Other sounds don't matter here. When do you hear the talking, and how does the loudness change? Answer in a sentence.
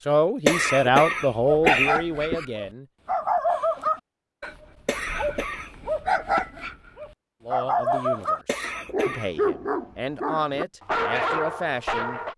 You can hear the talking briefly from 0.0 to 2.9 s; and from 7.5 to 12.2 s, getting louder.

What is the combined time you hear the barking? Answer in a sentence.
You can hear the barking for 11 seconds altogether.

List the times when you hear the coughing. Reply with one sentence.
The coughing can be heard from 0.5 to 2.5 s, from 4.8 to 5.8 s and from 8.4 to 9.3 s.